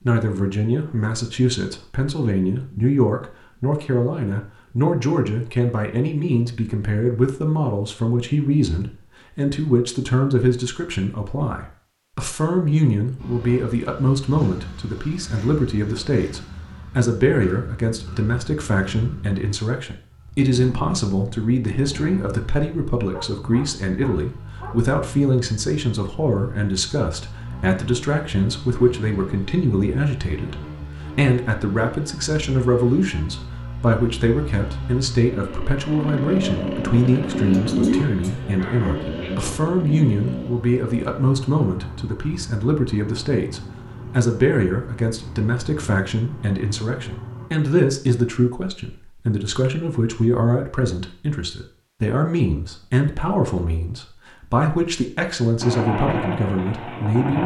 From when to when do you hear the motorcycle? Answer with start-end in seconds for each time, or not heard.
13.2-47.5, 55.6-57.4.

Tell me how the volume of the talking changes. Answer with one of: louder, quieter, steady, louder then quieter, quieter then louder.
steady.